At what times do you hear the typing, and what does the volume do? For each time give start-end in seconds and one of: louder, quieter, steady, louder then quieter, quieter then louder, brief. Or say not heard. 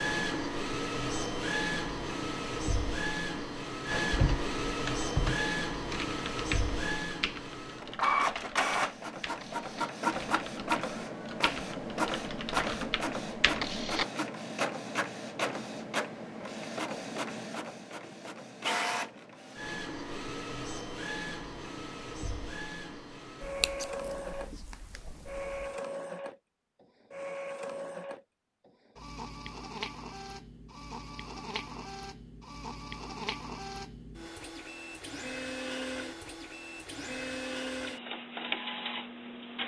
3.9-14.1 quieter then louder.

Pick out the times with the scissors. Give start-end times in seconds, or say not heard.
23.4-25.8.